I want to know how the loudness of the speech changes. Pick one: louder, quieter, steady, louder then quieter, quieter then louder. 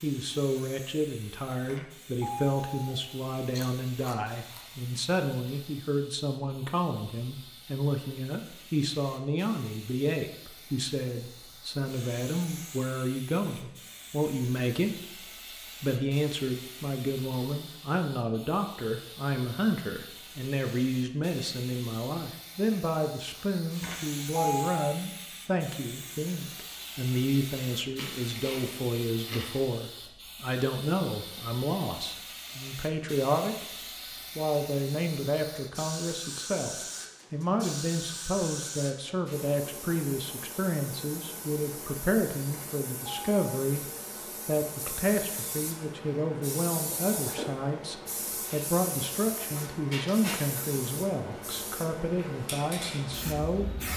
steady.